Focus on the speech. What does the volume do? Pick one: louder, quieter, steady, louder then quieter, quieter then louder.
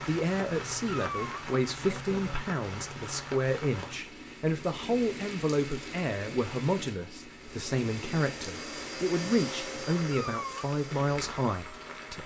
steady.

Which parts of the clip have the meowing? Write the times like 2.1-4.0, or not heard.
0.8-1.4, 10.1-10.7.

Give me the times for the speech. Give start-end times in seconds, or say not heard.
0.0-12.2.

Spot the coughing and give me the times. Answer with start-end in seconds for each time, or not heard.
not heard.